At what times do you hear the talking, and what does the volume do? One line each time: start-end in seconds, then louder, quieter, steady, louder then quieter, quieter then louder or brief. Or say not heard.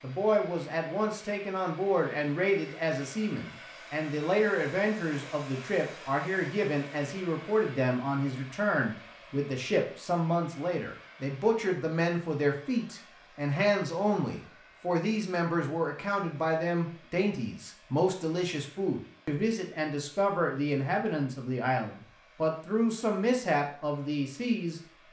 0.0-24.8 steady.